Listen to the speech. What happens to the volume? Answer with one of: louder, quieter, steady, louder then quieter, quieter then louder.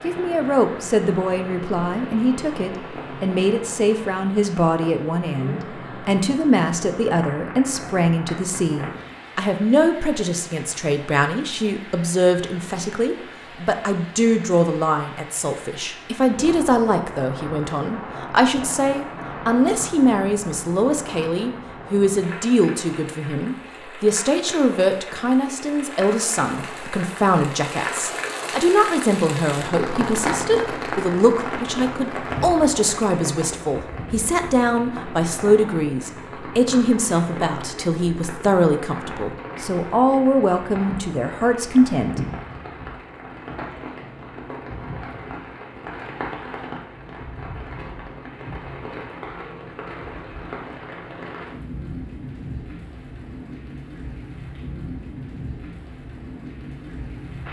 steady.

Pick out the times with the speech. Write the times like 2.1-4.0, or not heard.
0.0-42.2.